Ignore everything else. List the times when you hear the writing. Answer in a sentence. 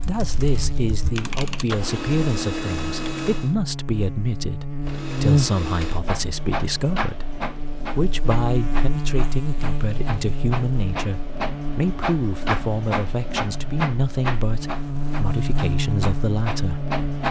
You can't hear the writing here.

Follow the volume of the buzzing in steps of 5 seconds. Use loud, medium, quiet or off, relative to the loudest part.
medium, loud, medium, loud.